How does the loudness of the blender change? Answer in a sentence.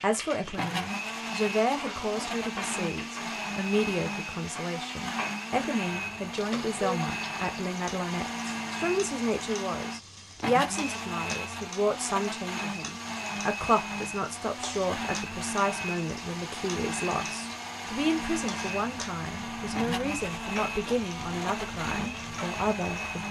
The loudness of the blender stays about the same.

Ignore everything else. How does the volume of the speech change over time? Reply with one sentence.
The loudness of the speech stays about the same.